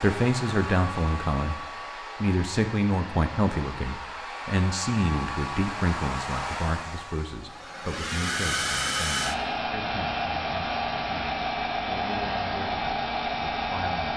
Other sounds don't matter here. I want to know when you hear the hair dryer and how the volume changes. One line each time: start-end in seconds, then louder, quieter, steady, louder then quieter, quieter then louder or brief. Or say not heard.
0.0-14.1 louder.